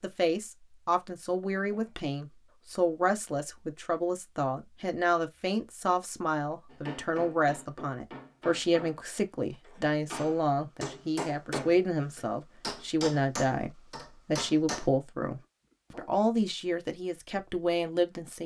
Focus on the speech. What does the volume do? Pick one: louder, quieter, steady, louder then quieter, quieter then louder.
steady.